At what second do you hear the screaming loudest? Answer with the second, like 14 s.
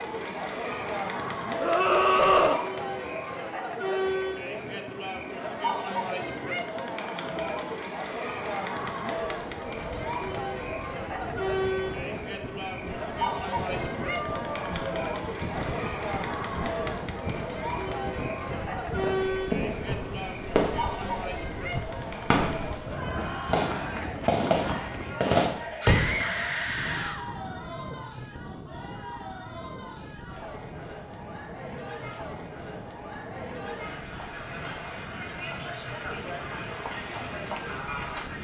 2 s.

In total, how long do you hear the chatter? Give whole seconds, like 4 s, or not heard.
38 s.